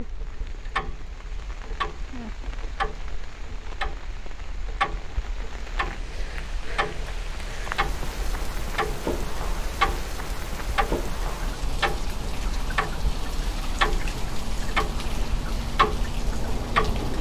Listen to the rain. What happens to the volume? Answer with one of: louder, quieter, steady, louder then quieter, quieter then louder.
louder.